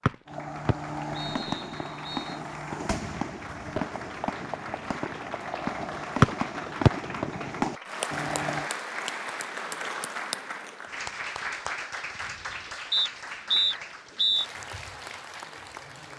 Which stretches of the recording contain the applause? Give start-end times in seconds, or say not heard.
0.0-16.1.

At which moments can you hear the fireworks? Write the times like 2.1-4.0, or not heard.
0.2-8.7.